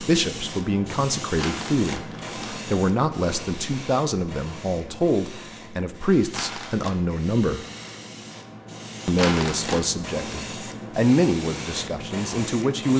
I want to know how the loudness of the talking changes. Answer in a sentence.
The loudness of the talking stays about the same.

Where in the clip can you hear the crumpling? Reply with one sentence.
You can hear the crumpling from 1.4 to 2.5 s, from 6.3 to 7.0 s and from 9.2 to 9.8 s.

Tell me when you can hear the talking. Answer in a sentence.
You can hear the talking from 0.0 to 7.7 s and from 9.1 to 12.9 s.